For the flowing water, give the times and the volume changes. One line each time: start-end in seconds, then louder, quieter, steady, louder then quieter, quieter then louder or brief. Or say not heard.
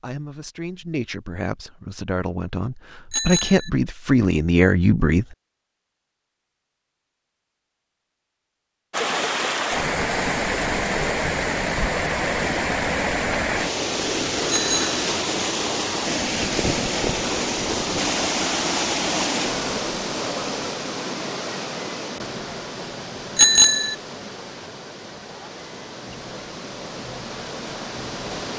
8.9-28.5 quieter.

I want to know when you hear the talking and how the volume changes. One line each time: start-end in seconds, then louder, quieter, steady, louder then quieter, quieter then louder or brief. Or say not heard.
0.0-5.2 louder.